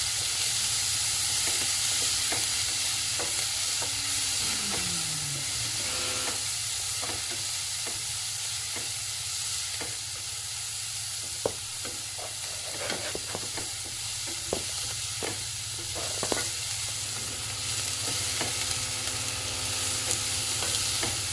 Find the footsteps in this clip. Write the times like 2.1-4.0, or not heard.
11.4-17.1.